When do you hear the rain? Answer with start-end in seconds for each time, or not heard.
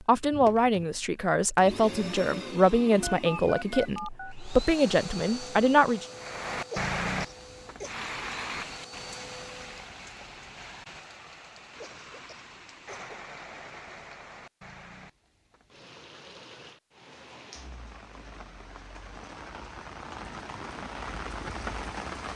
6.2-22.3.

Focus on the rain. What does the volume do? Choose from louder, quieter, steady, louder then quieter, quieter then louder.
quieter then louder.